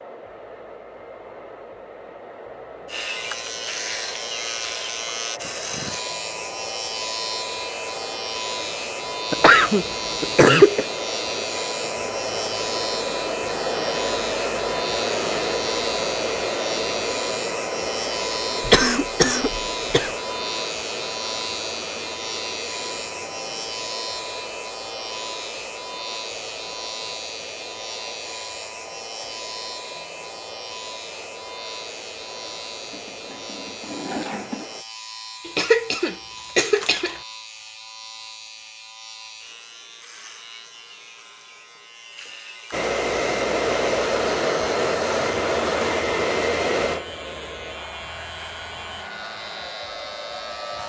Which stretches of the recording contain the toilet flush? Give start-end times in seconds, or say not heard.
32.8-34.7.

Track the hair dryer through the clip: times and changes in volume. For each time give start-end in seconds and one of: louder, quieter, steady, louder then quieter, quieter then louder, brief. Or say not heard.
0.0-34.9 louder then quieter
42.7-50.8 quieter.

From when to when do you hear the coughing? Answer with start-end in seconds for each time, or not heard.
9.3-10.8, 18.6-20.1, 35.5-37.1.